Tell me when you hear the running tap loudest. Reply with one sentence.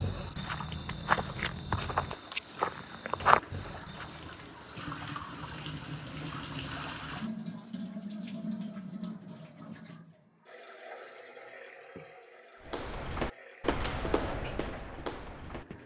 The loudest moment of the running tap is at 7 seconds.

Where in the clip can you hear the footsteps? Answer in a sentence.
The footsteps can be heard from 0.0 to 4.5 s and from 12.7 to 15.8 s.